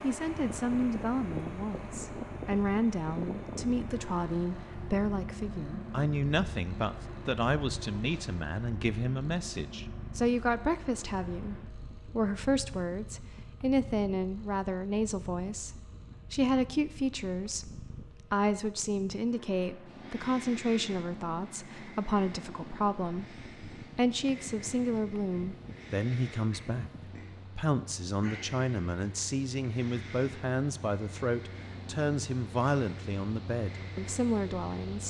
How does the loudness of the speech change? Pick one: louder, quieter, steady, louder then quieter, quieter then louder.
steady.